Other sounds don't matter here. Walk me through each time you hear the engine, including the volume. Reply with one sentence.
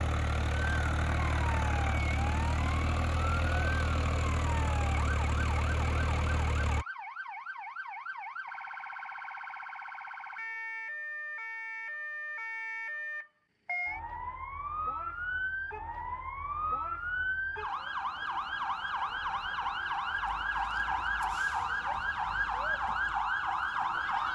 You can hear the engine from 0.0 to 6.8 s, at a steady volume.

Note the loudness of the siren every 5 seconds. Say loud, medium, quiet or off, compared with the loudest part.
medium, medium, medium, loud, loud.